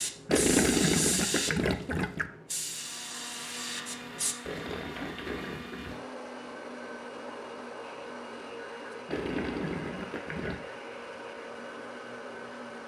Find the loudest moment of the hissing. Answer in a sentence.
The volume of the hissing peaks at 1 second.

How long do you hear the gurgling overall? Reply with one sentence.
You can hear the gurgling for 5 seconds altogether.